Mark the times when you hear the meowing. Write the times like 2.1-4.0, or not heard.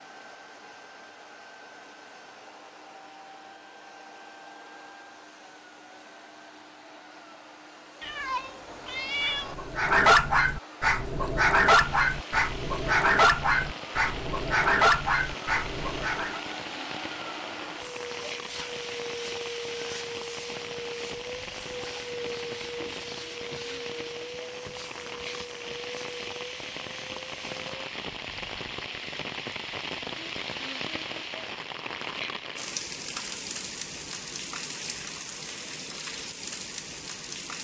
8.0-9.6.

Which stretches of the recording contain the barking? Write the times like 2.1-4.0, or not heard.
9.2-16.4.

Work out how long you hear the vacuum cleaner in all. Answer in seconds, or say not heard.
28 s.